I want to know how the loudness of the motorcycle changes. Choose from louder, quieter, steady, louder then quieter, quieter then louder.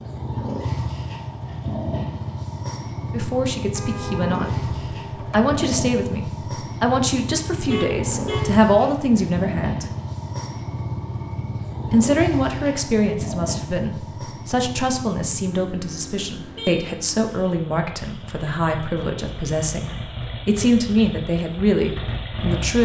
quieter.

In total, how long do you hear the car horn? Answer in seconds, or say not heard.
3 s.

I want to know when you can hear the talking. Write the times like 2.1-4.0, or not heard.
3.1-4.5, 5.3-9.8, 11.9-22.7.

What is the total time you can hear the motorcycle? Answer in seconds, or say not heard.
23 s.